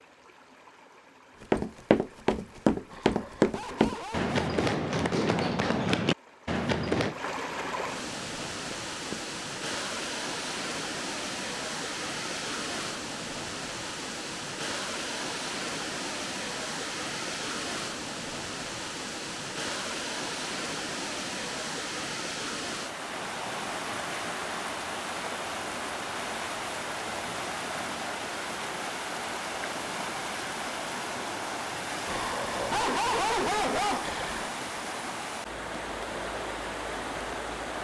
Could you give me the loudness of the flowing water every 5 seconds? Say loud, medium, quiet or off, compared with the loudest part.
quiet, loud, loud, loud, loud, loud, loud, loud.